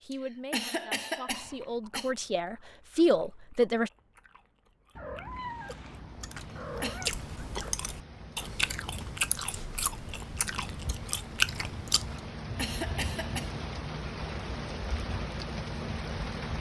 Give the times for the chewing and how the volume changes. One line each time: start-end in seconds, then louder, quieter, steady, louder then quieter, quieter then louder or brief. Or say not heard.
1.2-12.2 louder.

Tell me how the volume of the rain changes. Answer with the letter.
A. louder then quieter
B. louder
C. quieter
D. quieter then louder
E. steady
B.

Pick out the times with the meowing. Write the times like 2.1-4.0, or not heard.
5.0-7.8.